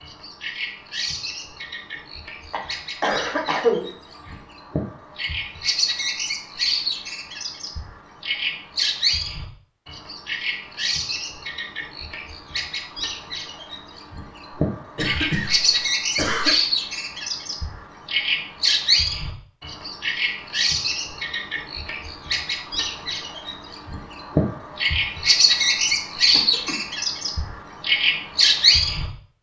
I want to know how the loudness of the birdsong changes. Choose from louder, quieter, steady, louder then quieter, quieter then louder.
louder.